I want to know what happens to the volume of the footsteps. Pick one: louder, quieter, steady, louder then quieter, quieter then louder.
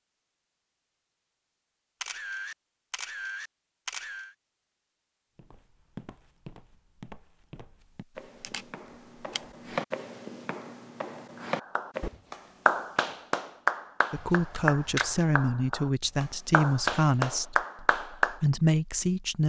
louder.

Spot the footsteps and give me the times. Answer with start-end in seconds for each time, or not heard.
5.3-12.2.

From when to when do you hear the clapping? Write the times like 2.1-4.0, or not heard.
11.4-18.4.